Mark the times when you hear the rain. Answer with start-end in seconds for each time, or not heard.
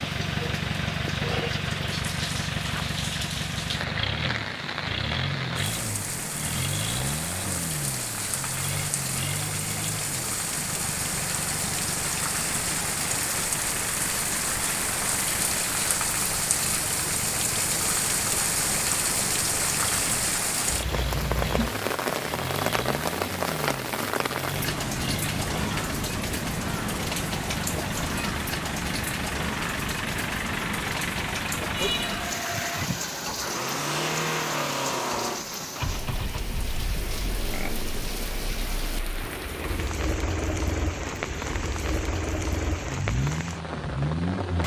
0.0-44.6.